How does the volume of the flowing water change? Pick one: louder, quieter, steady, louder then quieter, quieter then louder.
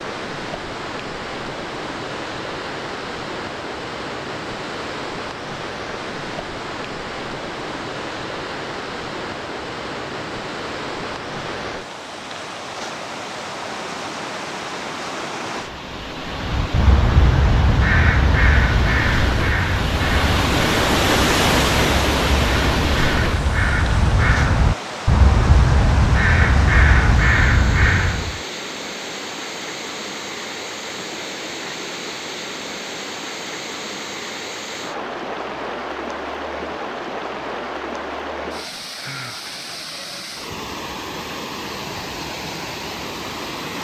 louder then quieter.